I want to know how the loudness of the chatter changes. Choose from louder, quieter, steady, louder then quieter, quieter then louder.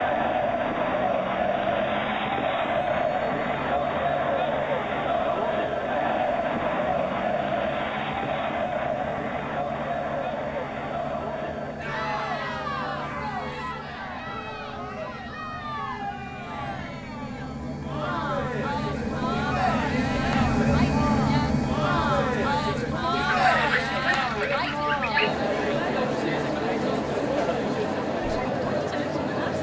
quieter then louder.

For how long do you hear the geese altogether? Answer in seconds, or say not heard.
2 s.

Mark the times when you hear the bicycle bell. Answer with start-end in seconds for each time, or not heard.
not heard.